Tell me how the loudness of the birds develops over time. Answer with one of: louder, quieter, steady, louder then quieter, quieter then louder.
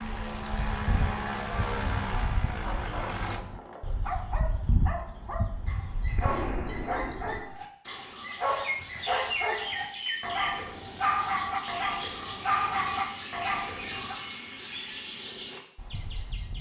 steady.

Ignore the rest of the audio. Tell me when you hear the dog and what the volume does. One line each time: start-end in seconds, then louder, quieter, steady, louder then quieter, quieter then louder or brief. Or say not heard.
2.6-14.2 louder.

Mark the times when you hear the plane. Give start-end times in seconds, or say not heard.
0.0-3.4.